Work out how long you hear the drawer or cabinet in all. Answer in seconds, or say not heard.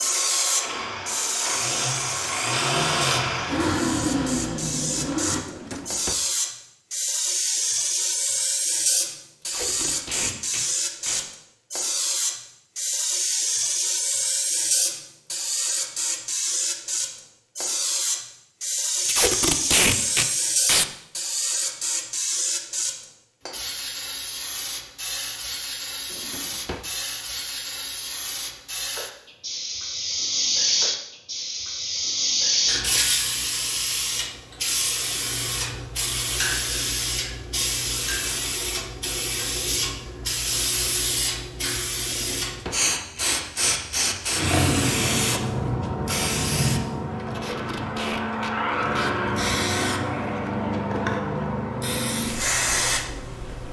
2 s.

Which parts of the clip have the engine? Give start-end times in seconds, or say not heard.
0.0-5.4.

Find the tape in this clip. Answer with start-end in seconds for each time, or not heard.
9.4-11.2, 19.1-20.9, 47.3-49.1.